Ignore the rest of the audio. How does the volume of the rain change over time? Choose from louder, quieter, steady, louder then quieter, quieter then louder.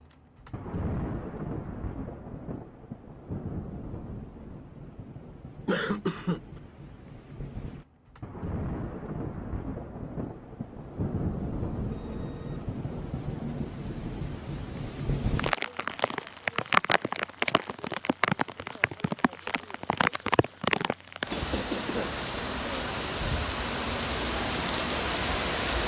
louder.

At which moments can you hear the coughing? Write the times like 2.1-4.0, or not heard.
5.7-6.6, 21.3-22.1.